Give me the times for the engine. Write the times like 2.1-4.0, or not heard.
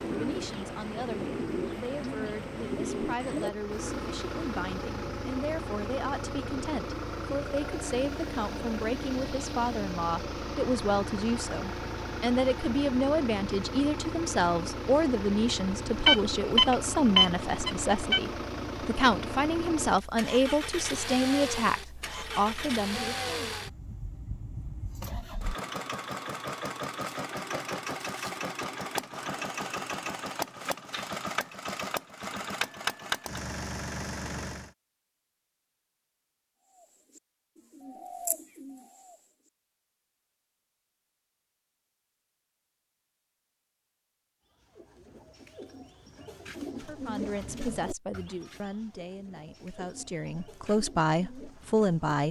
0.0-34.8.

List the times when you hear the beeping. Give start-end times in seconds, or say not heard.
15.8-18.2.